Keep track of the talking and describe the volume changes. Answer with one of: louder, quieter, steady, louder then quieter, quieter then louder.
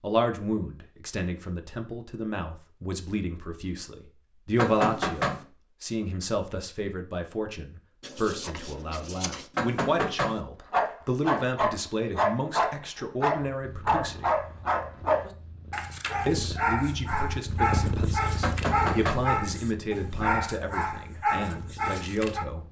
steady.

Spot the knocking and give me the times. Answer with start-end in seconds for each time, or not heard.
4.5-5.5, 9.6-10.4, 18.4-19.2.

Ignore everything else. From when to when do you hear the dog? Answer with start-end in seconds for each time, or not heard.
10.7-22.4.